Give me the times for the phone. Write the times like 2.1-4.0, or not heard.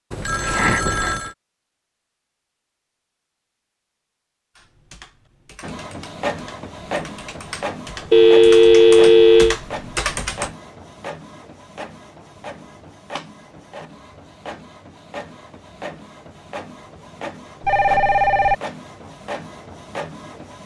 0.1-1.3, 8.1-9.6, 17.6-18.6.